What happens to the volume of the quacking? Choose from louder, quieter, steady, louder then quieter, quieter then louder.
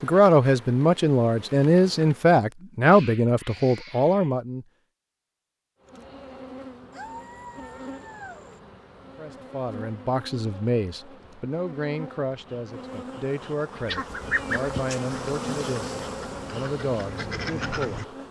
quieter then louder.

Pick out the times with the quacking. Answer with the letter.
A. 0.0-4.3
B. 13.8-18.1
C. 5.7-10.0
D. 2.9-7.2
B.